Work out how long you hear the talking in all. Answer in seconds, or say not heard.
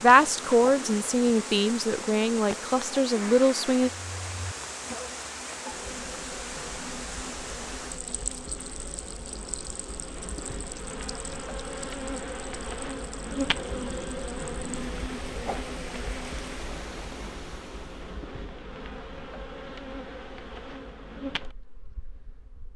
4 s.